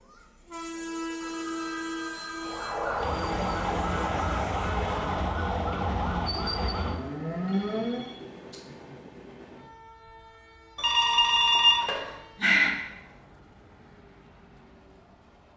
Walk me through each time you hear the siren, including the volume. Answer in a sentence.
The siren can be heard from 2.4 to 8.2 s, at a steady volume.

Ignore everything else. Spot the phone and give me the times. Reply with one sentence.
You can hear the phone from 1.1 to 2.7 s, from 7.5 to 8.7 s and from 10.8 to 12.7 s.